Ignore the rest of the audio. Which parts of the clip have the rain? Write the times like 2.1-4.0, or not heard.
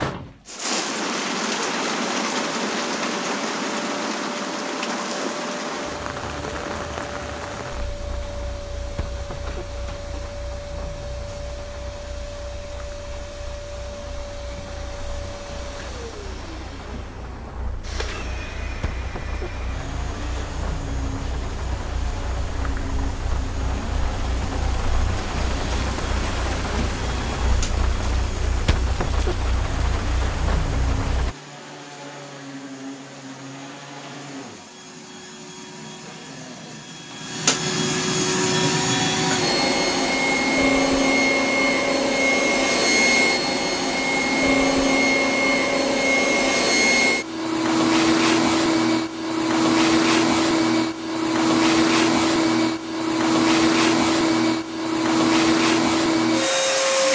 0.0-31.4.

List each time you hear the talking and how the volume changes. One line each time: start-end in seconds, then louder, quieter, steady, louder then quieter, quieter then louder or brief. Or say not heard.
not heard.